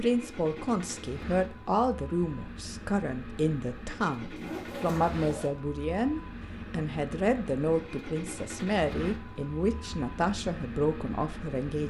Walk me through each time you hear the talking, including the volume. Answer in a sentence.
The talking can be heard from 0.0 to 11.8 s, at a steady volume.